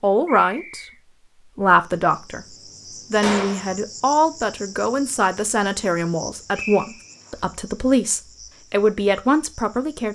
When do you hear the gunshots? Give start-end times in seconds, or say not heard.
3.2-3.7.